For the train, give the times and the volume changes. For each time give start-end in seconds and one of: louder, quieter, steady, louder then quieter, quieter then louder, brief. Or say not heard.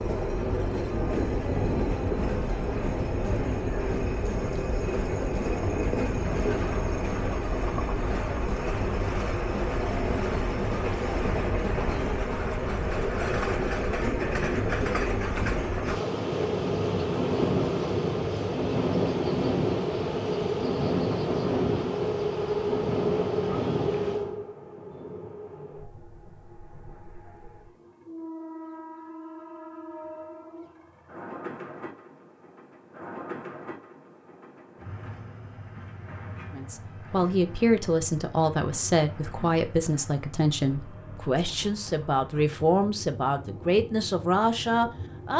0.0-45.3 quieter.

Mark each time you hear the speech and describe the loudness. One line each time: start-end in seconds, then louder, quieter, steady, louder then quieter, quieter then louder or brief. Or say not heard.
36.5-45.3 steady.